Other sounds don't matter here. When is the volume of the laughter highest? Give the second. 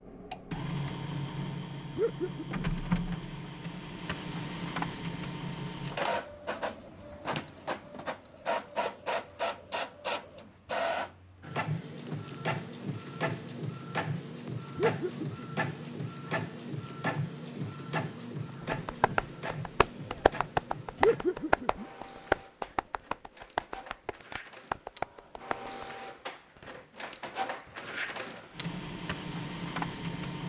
21 s.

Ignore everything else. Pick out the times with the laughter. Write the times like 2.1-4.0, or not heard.
1.9-2.8, 14.8-15.6, 21.0-21.9.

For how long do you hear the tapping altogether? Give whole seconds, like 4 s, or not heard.
7 s.